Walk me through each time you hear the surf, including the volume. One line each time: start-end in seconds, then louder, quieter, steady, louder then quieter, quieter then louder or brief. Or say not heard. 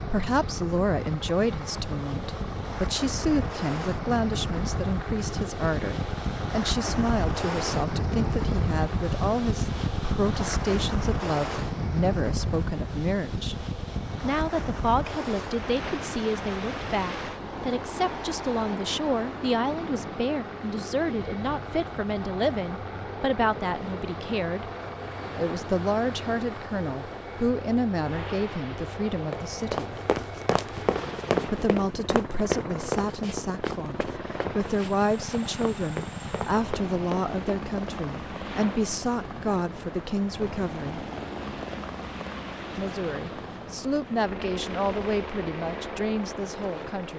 0.0-47.1 quieter.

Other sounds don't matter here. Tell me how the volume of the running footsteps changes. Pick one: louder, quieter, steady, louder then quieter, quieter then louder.
quieter.